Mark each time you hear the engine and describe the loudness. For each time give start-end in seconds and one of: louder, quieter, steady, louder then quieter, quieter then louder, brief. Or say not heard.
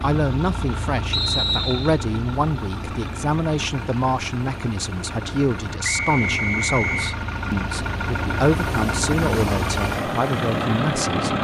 0.0-11.3 louder.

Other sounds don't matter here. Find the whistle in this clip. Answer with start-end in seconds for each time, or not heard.
1.1-1.9, 5.8-7.2.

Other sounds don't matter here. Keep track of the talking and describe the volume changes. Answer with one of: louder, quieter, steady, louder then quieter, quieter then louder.
steady.